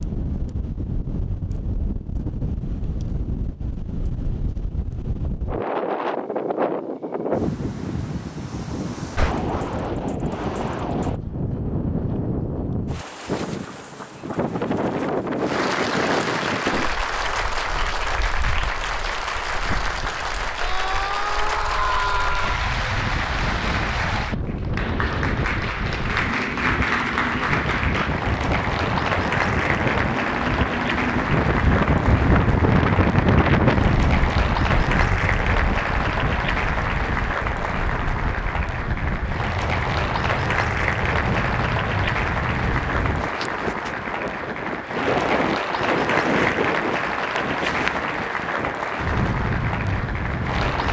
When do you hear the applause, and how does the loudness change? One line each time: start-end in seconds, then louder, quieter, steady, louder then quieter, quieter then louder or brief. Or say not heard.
15.3-50.8 steady.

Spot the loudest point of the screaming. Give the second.
22 s.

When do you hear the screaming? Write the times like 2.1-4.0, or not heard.
20.6-22.6.